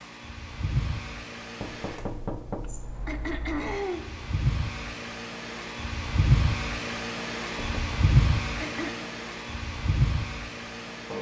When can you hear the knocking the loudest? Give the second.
2 s.